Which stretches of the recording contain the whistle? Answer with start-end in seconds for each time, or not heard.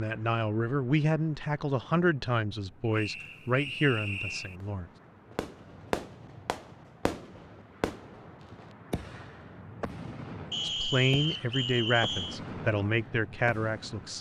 2.9-4.5, 10.5-12.4.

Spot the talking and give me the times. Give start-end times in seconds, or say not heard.
0.0-4.9, 10.7-14.1.